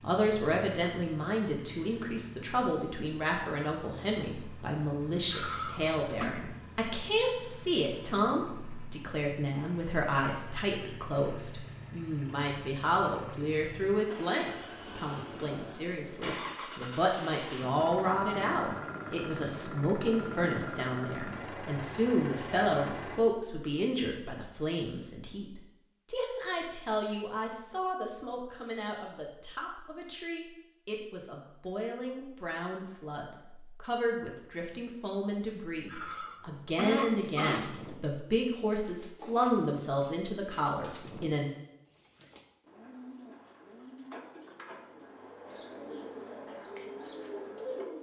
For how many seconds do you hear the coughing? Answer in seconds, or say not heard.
3 s.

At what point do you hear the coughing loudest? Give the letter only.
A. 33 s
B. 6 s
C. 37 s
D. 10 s
C.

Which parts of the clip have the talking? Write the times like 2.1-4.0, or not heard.
0.0-41.5.